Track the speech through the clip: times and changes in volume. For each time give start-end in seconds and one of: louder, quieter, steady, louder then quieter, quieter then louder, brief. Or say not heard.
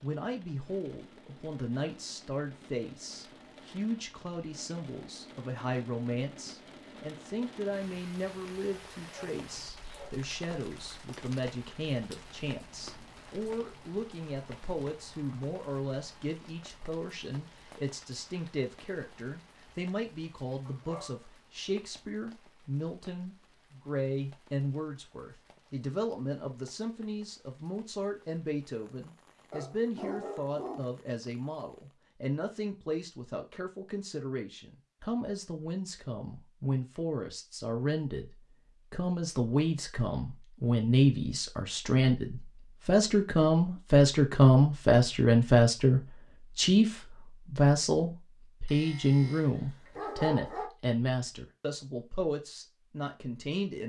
0.0-53.8 louder.